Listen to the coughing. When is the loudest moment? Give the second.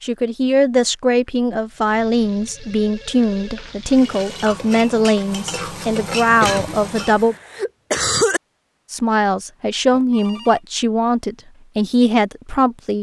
8 s.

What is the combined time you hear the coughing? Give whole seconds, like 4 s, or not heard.
2 s.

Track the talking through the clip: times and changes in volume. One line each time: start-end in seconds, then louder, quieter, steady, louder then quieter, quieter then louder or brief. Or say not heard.
0.0-7.3 steady
8.9-12.9 steady.